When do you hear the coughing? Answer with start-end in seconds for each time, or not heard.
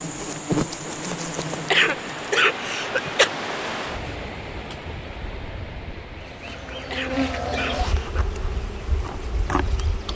1.7-3.3, 6.9-8.2.